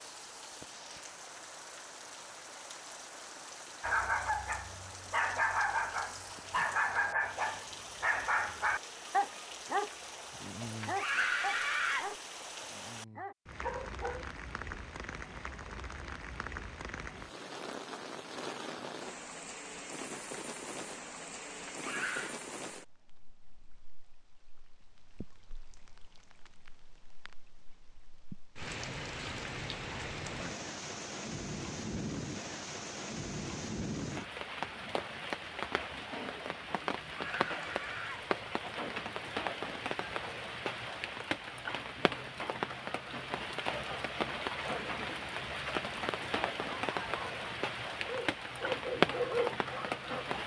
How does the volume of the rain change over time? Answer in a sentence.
The volume of the rain goes up.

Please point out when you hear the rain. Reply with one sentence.
You can hear the rain from 0.0 to 50.4 s.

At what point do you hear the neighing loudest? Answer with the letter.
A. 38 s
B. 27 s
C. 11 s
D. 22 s
C.